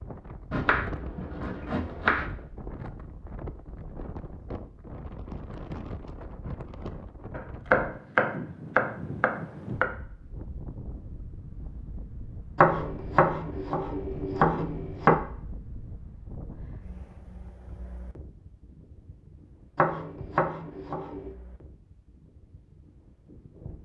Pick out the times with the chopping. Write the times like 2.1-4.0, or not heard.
0.5-2.3, 7.3-9.9, 12.6-15.2, 19.8-21.3.